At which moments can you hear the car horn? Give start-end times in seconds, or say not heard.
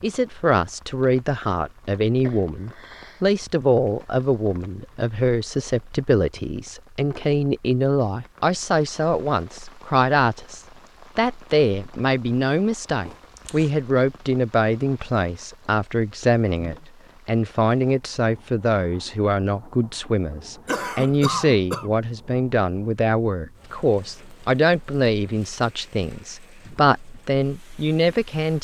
not heard.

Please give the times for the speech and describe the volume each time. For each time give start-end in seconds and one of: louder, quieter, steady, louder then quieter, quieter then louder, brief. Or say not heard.
0.0-28.5 steady.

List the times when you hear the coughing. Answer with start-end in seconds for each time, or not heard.
2.2-3.2, 13.1-13.7, 20.6-21.9.